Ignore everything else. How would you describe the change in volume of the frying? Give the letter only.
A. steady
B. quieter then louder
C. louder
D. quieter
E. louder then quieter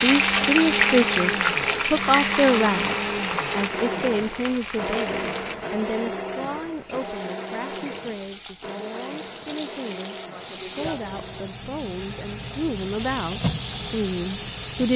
B.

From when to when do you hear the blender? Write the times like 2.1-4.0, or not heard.
0.0-14.9.